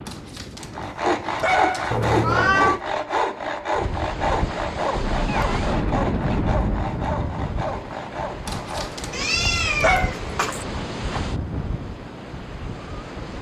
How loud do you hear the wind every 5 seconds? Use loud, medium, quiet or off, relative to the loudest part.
medium, loud, loud.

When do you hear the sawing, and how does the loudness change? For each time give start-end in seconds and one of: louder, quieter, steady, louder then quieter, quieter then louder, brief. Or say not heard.
0.6-9.1 quieter.